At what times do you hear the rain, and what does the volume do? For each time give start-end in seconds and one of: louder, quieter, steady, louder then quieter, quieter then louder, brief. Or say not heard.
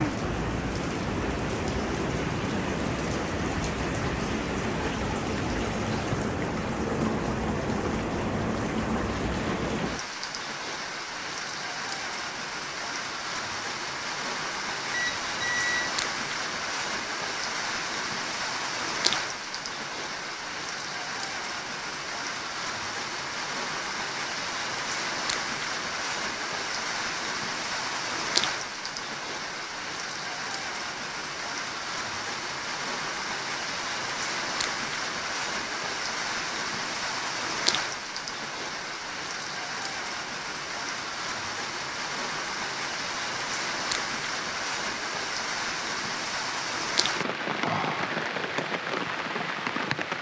0.0-50.1 steady.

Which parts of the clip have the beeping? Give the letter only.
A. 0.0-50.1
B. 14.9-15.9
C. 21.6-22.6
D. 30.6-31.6
B.